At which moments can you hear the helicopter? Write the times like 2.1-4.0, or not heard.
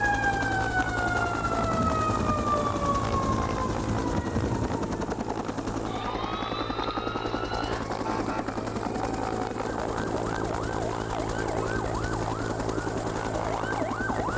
0.0-14.3.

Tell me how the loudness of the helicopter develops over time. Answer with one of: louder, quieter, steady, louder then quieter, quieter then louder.
steady.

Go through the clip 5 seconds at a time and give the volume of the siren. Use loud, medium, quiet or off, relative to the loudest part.
loud, medium, medium.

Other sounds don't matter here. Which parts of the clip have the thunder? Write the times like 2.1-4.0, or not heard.
1.6-4.9.